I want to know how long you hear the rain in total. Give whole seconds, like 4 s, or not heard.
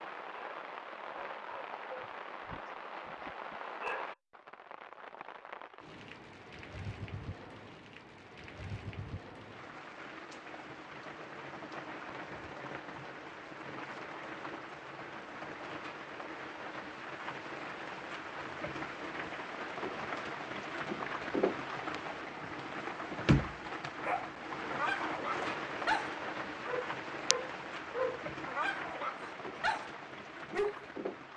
31 s.